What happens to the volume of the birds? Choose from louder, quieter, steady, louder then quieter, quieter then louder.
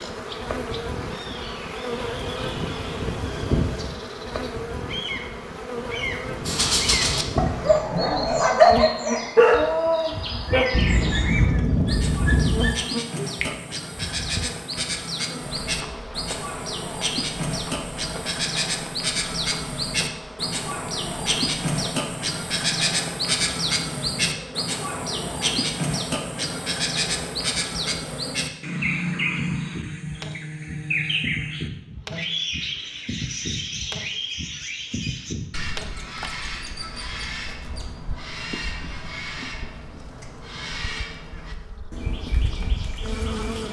louder then quieter.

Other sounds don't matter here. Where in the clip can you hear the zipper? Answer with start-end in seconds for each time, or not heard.
not heard.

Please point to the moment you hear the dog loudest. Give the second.
9 s.